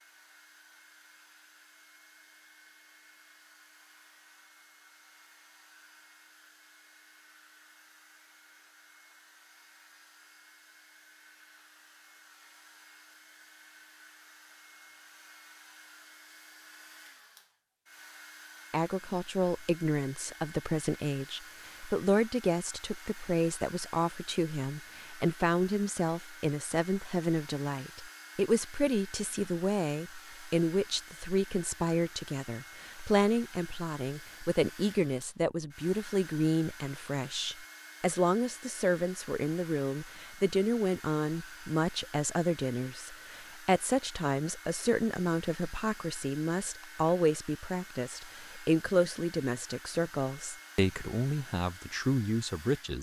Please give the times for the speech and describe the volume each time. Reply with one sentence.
You can hear the speech from 18.7 to 52.9 s, at a steady volume.